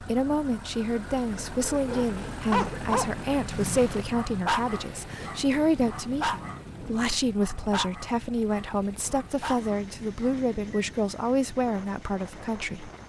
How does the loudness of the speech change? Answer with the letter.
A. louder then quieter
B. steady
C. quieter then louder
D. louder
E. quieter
B.